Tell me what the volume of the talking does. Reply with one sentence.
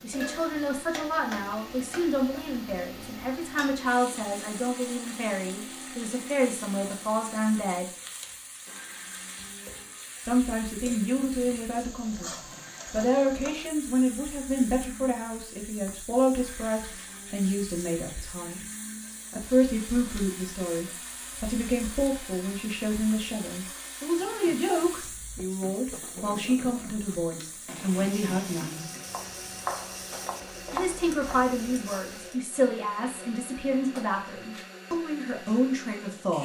The volume of the talking stays about the same.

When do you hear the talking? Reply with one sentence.
The talking can be heard from 0.0 to 7.8 s, from 10.2 to 18.6 s, from 19.3 to 28.9 s and from 30.7 to 36.3 s.